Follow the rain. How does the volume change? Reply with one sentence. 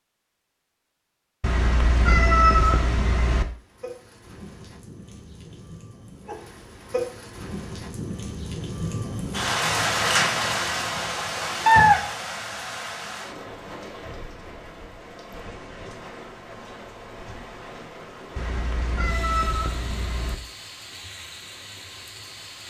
The volume of the rain goes up, then down.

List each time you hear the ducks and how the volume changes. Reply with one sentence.
You can't hear the ducks here.